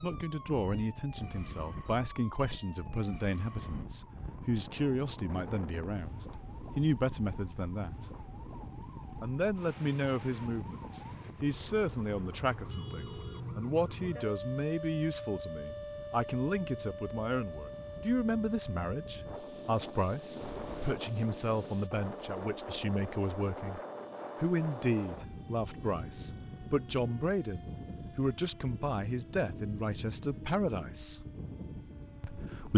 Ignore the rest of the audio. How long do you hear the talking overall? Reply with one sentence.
You can hear the talking for 30 seconds altogether.